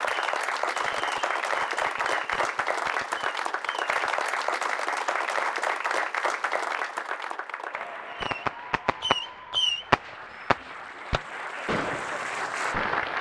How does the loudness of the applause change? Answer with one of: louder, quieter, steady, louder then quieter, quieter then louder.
quieter then louder.